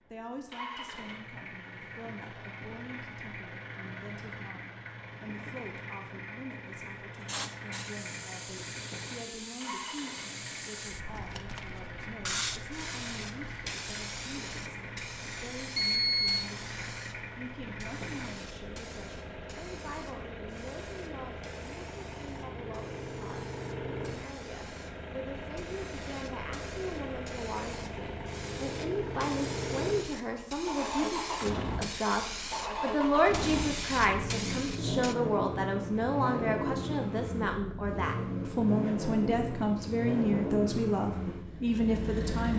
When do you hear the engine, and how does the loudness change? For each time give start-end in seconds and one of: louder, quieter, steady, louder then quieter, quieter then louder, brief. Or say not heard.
0.0-42.5 louder.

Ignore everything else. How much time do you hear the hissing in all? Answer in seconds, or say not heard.
28 s.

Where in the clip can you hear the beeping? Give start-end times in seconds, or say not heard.
15.8-16.4.